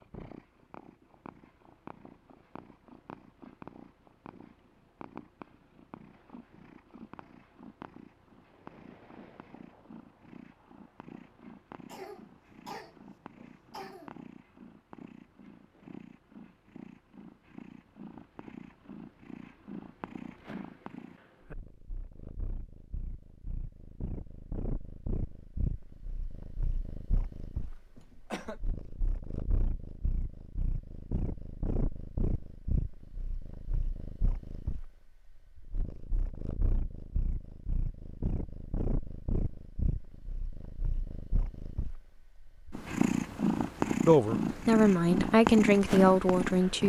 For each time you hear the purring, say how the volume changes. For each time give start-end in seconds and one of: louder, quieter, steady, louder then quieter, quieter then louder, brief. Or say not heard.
0.0-46.8 louder.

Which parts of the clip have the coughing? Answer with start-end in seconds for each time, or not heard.
11.8-14.2, 27.9-28.6.